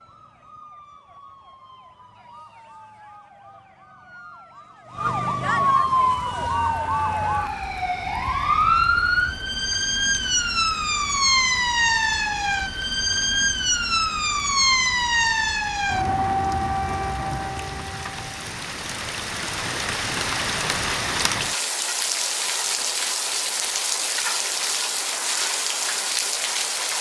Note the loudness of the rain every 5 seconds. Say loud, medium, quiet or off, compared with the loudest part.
off, quiet, quiet, medium, loud, loud.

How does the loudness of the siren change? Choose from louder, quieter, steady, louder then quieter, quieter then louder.
louder.